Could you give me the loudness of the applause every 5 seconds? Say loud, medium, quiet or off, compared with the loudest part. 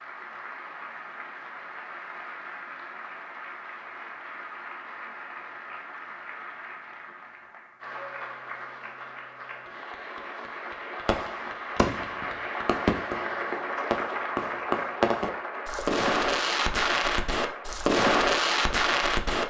medium, medium, loud, loud.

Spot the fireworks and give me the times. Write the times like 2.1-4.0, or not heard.
11.1-19.4.